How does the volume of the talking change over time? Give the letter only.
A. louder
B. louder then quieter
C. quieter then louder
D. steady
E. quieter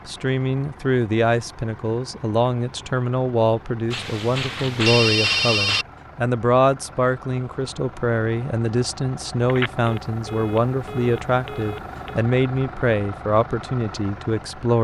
D.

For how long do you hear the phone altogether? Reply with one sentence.
The phone can be heard for 5 seconds in total.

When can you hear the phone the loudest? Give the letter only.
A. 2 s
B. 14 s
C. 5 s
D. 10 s
C.